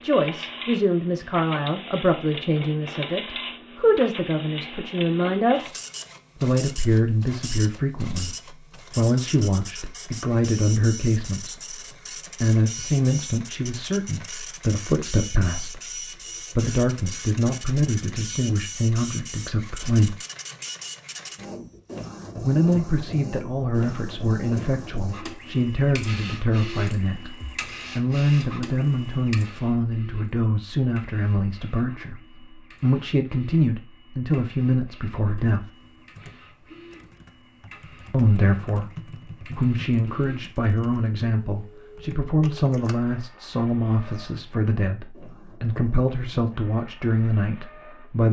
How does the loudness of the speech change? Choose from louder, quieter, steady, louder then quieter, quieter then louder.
steady.